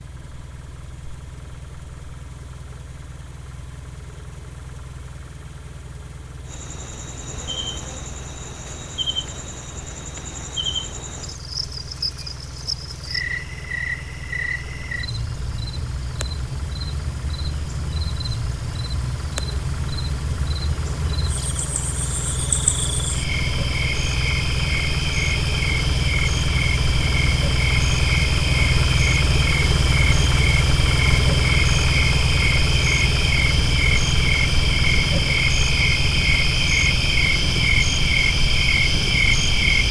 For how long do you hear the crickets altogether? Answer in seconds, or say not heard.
33 s.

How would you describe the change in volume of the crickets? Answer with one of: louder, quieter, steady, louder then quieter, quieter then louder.
louder.